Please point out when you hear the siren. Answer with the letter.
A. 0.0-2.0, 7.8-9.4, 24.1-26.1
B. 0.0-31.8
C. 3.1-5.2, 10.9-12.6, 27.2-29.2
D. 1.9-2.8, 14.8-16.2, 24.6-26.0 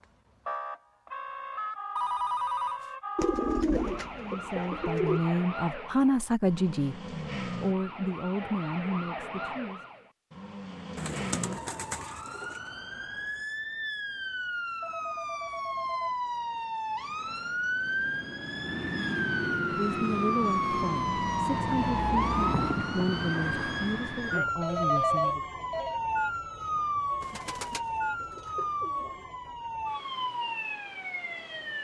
B.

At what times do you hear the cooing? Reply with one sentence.
You can hear the cooing from 3.1 to 5.2 s, from 10.9 to 12.6 s and from 27.2 to 29.2 s.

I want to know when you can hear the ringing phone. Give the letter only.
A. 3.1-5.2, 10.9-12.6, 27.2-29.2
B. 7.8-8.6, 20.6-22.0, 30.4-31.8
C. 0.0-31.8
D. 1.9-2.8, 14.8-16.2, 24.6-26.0
D.